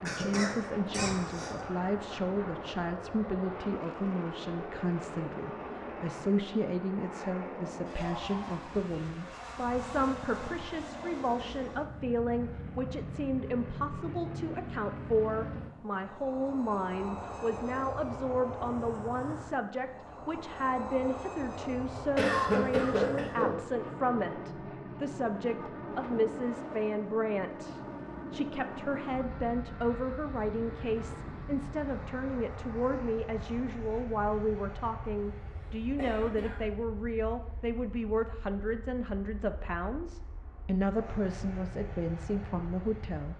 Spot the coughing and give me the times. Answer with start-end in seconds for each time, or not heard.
0.1-1.6, 22.1-23.6, 36.0-36.5.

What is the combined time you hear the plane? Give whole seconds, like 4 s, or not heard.
43 s.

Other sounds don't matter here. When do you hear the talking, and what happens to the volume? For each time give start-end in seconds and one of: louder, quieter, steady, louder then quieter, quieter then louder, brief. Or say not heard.
0.0-43.3 steady.